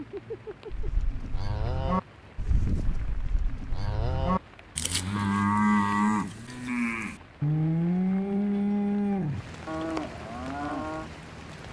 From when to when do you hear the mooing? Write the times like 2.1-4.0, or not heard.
0.7-11.1.